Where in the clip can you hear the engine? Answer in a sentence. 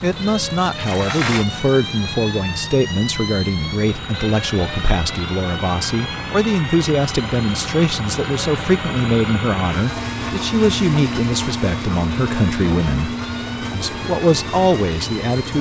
The engine can be heard from 0.0 to 15.5 s.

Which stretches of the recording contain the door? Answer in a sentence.
The door can be heard from 0.8 to 1.4 s.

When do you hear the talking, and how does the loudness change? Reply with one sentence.
The talking can be heard from 0.0 to 13.1 s, at a steady volume; and briefly from 13.7 to 15.5 s.